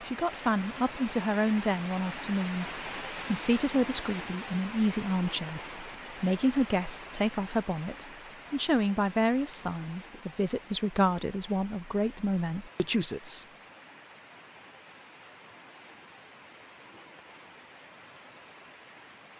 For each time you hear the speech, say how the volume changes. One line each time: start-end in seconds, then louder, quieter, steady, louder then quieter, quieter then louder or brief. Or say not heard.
0.1-13.4 steady.